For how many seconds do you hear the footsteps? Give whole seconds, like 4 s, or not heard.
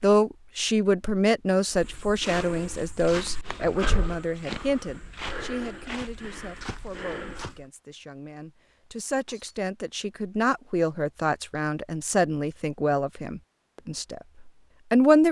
6 s.